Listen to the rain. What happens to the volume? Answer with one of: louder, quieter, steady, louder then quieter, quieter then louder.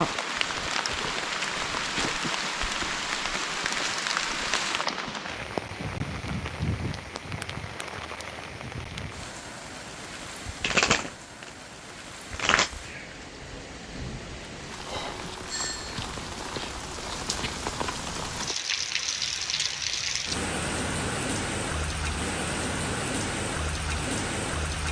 quieter then louder.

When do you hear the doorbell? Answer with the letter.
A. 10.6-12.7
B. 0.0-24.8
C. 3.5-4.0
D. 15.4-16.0
D.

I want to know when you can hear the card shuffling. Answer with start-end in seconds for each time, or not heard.
10.6-12.7.